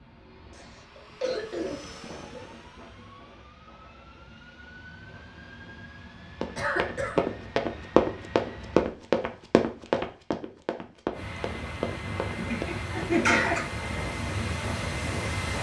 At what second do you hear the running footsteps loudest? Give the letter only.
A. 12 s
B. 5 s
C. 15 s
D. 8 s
D.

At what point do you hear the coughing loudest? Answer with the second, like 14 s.
13 s.